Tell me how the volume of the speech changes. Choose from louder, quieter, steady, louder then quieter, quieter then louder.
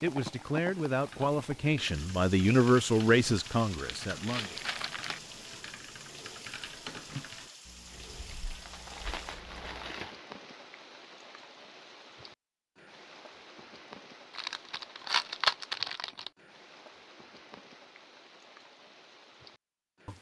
louder then quieter.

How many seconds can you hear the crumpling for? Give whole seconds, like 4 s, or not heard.
6 s.